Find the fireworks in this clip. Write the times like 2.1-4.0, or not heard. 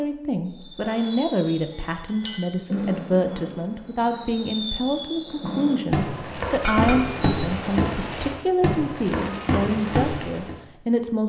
0.5-10.6.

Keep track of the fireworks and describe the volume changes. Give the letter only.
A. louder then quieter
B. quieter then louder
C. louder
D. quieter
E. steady
C.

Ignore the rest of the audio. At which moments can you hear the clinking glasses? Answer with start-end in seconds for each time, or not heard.
1.7-2.5, 6.6-7.3.